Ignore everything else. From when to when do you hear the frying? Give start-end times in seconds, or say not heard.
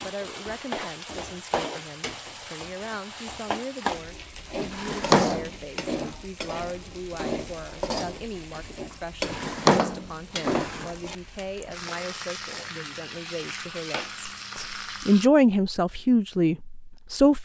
0.0-15.3.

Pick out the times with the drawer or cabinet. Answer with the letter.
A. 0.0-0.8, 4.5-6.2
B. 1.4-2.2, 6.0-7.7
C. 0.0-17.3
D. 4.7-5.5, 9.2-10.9
D.